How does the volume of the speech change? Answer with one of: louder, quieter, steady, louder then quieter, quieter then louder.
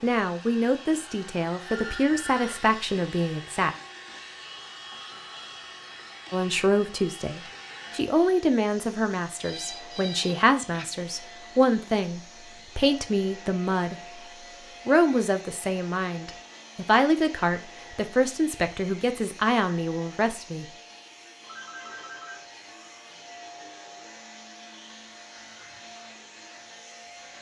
steady.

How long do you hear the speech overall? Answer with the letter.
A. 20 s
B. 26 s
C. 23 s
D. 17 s
D.